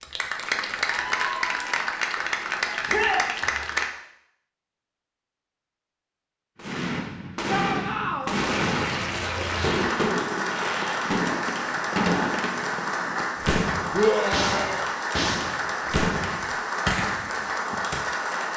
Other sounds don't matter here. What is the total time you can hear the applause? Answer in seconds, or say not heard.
14 s.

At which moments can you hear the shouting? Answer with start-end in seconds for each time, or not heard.
2.9-3.3, 7.5-8.3, 13.9-14.8.